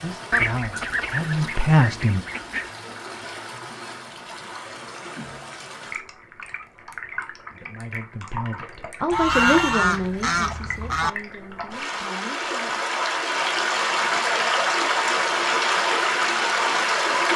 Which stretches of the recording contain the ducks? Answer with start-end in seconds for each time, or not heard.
0.3-2.7, 9.1-11.1.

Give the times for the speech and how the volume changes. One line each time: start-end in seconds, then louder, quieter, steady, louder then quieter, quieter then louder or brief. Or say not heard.
0.0-2.2 brief
7.5-12.8 louder then quieter.